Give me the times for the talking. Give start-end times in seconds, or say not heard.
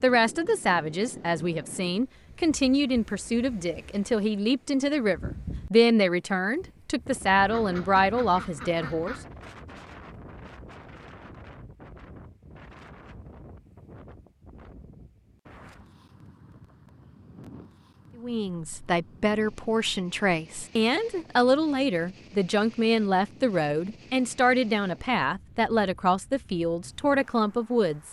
0.0-9.2, 18.1-28.0.